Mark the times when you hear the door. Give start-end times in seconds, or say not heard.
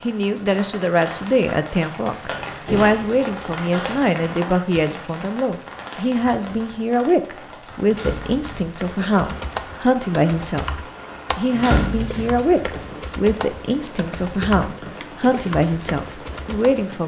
2.3-4.0, 7.8-8.7, 11.5-12.3.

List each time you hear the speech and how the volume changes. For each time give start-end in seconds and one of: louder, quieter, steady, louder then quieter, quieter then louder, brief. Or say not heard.
0.0-17.0 steady.